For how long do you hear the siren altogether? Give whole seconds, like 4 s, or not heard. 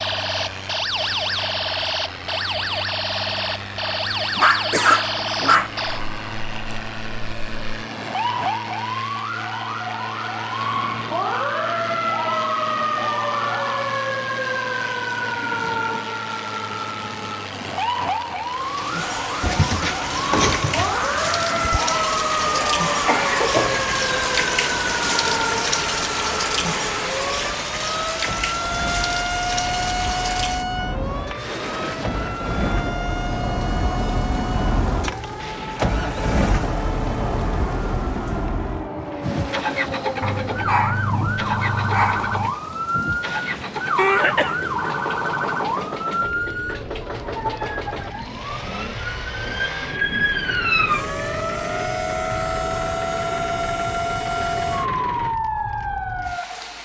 57 s.